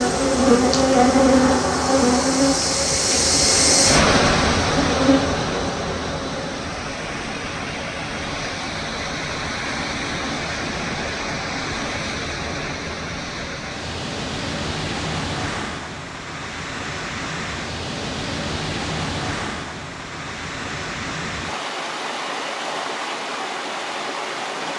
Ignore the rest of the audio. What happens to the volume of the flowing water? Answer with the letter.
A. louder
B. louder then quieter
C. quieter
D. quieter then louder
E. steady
C.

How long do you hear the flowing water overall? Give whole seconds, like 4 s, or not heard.
25 s.